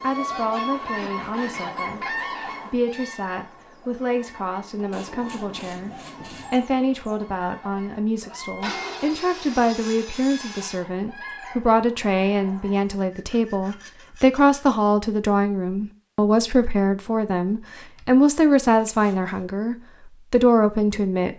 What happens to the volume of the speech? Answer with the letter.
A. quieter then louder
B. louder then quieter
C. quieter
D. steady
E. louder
E.